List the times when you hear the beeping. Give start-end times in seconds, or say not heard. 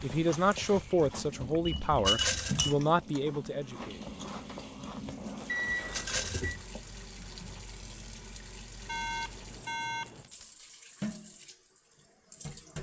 1.6-2.7, 5.5-6.6, 8.8-10.3.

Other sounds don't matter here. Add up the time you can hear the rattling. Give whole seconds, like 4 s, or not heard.
2 s.